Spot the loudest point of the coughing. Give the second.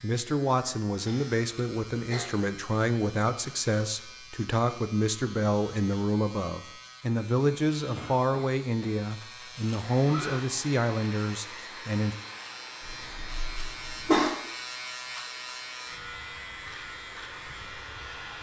14 s.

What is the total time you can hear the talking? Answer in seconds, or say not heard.
12 s.